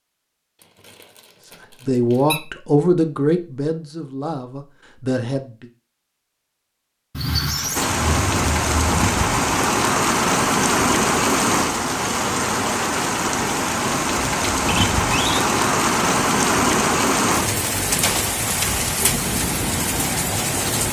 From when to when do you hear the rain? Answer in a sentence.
You can hear the rain from 7.8 to 20.8 s.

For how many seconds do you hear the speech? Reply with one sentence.
You can hear the speech for 4 seconds altogether.